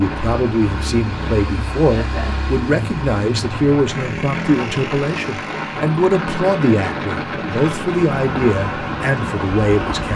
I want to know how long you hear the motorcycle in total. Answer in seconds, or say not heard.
10 s.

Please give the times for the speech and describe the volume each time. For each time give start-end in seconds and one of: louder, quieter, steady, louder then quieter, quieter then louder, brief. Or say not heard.
0.0-10.1 steady.